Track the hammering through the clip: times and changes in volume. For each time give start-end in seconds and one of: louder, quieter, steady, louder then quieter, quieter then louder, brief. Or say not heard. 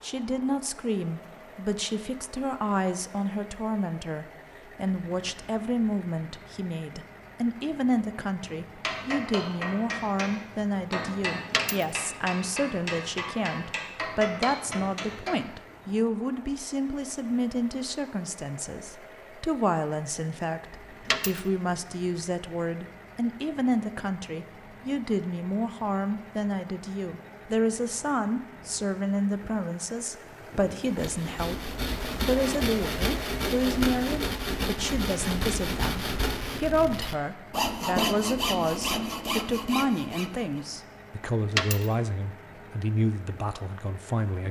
8.4-15.6 steady.